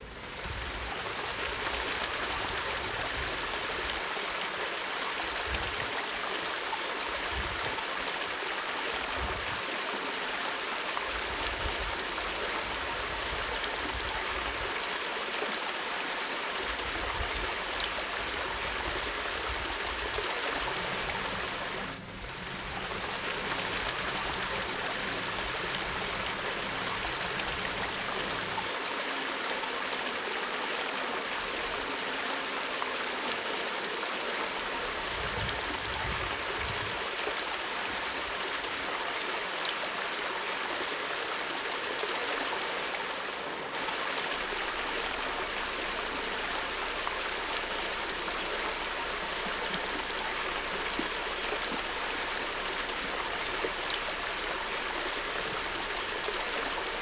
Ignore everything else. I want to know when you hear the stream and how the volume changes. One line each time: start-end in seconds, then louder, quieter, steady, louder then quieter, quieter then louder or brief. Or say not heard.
0.0-56.9 steady.